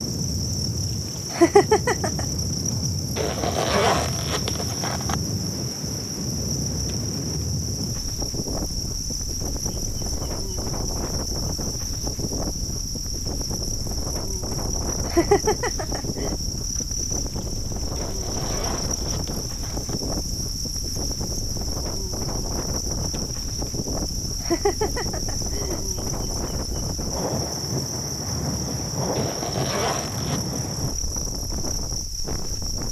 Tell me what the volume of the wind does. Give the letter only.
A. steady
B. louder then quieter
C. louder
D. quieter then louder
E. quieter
A.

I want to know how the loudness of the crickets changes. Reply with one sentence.
The loudness of the crickets stays about the same.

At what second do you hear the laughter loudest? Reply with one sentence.
The loudest moment of the laughter is at 2 seconds.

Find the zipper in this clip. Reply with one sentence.
The zipper can be heard from 3.1 to 5.2 s, from 17.9 to 19.9 s and from 29.1 to 30.4 s.